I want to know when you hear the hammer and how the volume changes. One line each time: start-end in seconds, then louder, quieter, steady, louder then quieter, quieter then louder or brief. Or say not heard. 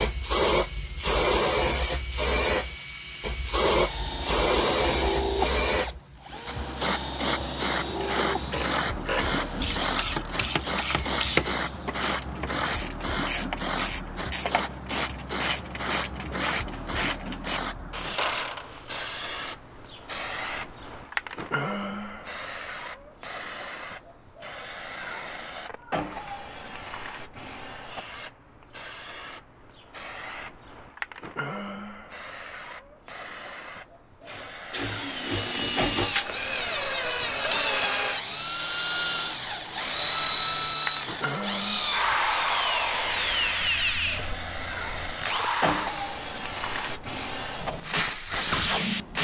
not heard.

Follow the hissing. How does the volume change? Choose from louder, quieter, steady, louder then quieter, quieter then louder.
quieter then louder.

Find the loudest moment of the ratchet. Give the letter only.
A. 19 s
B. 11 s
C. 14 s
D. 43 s
B.